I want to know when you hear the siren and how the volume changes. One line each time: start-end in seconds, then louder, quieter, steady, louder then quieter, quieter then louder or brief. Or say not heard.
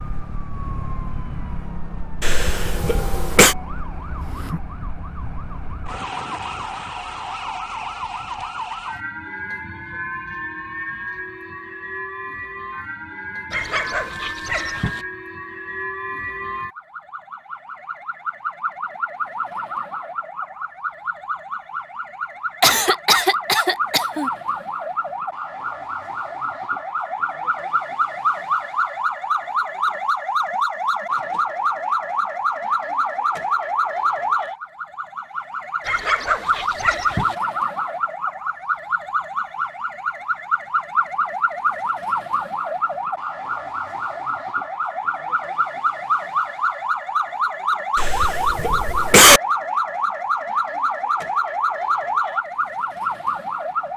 0.0-53.9 louder.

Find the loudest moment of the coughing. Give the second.
49 s.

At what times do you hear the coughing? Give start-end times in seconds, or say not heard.
2.2-3.5, 22.6-24.3, 48.0-49.4.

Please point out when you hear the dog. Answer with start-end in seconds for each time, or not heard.
13.5-15.1, 35.8-37.4.